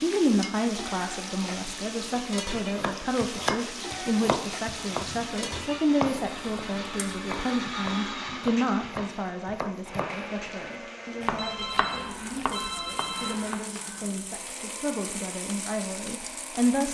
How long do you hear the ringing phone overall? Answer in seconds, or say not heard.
3 s.